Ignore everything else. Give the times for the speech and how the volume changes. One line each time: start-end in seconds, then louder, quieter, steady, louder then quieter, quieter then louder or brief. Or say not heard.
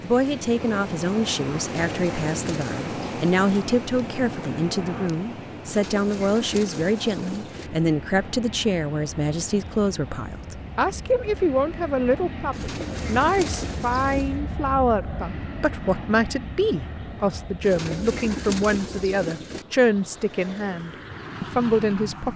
0.0-22.3 steady.